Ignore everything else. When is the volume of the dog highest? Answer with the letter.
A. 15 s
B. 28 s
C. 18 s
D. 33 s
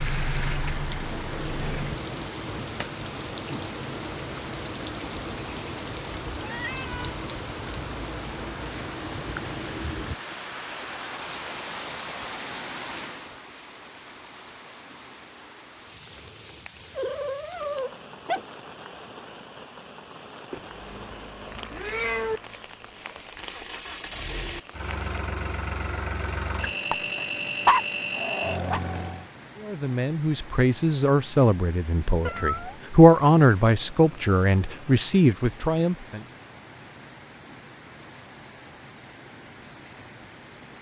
B.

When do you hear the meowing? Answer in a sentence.
The meowing can be heard from 6.3 to 7.2 s, from 20.5 to 22.4 s and from 32.2 to 32.9 s.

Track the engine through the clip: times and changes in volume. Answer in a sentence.
You can hear the engine briefly from 0.0 to 1.9 s; and from 20.6 to 29.3 s, getting louder.